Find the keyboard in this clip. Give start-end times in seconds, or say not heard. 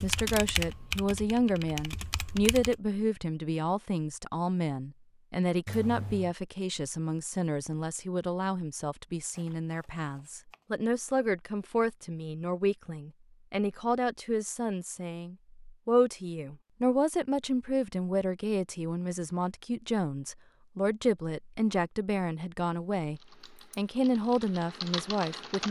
0.0-2.8, 23.1-25.6.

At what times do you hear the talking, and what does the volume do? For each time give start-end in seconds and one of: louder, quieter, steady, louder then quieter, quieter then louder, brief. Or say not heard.
0.0-25.6 steady.